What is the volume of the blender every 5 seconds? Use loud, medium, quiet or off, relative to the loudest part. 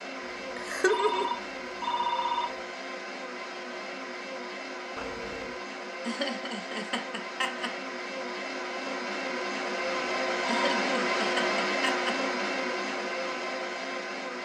medium, medium, loud.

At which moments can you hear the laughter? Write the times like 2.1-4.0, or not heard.
0.6-1.3, 6.0-7.8, 10.4-12.2.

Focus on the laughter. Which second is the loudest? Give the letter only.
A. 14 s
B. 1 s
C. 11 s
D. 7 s
B.